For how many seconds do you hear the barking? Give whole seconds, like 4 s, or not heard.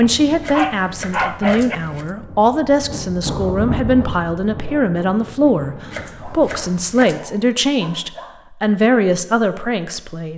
4 s.